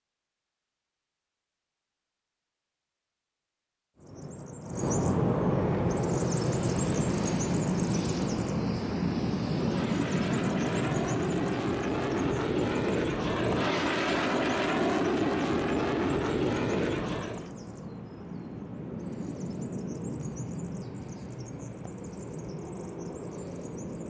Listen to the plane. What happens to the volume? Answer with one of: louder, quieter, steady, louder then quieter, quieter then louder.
louder.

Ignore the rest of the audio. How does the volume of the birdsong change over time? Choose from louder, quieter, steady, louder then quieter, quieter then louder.
quieter.